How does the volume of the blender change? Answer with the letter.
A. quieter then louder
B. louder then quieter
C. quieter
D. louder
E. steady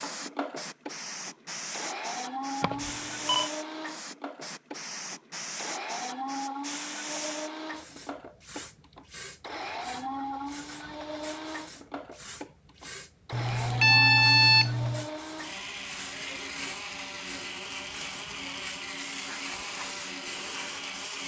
E.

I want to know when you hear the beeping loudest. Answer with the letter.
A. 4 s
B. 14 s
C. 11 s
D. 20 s
B.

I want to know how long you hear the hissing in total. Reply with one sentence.
The hissing can be heard for 21 seconds in total.